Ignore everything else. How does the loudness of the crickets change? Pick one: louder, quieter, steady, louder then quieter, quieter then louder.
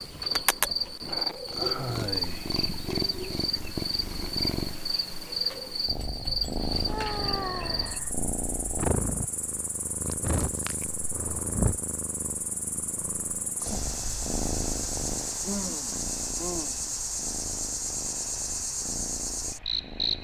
quieter then louder.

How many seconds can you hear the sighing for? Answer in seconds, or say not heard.
4 s.